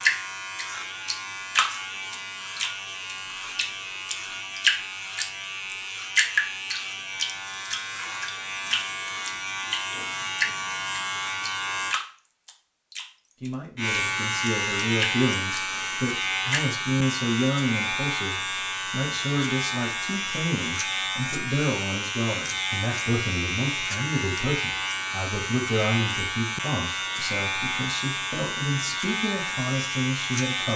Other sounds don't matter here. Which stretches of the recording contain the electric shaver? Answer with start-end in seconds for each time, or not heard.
0.0-12.0, 13.8-30.7.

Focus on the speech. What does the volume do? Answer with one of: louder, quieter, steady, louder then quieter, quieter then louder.
steady.